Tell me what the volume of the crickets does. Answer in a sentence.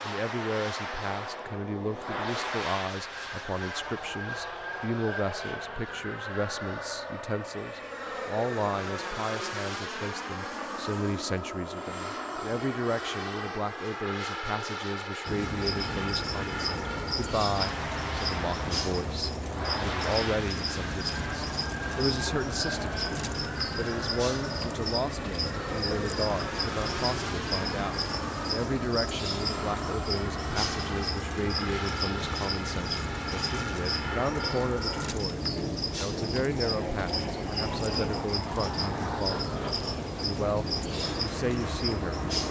The volume of the crickets stays about the same.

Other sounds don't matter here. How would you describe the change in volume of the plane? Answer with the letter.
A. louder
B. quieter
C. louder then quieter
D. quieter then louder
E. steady
E.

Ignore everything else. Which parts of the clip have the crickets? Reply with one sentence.
The crickets can be heard from 15.2 to 42.4 s.